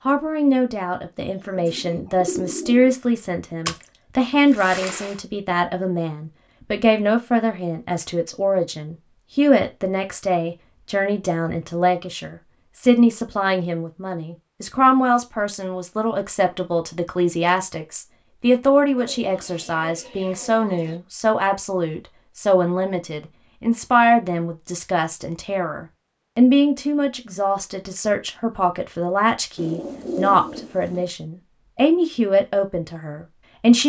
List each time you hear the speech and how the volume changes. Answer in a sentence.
The speech can be heard from 0.1 to 33.8 s, at a steady volume.